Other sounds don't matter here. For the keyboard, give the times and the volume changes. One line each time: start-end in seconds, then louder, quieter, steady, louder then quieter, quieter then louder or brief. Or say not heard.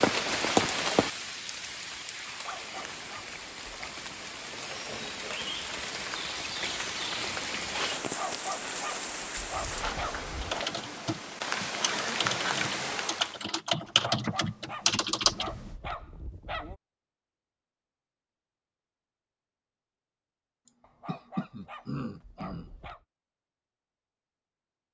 10.4-15.7 louder.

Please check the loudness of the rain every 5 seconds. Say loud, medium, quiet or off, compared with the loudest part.
loud, loud, loud, off, off.